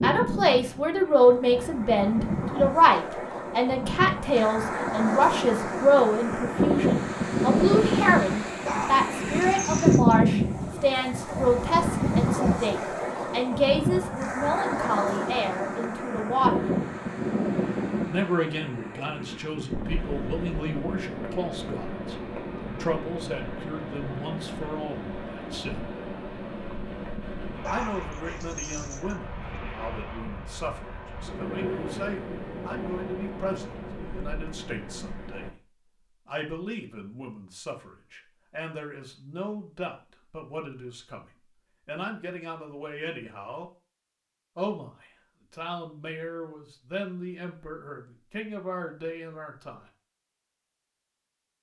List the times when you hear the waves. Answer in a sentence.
You can hear the waves from 0.0 to 35.5 s.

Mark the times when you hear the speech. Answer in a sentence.
You can hear the speech from 0.0 to 16.7 s, from 18.1 to 25.9 s, from 27.7 to 35.5 s, from 36.2 to 41.2 s, from 41.9 to 43.7 s and from 44.5 to 49.9 s.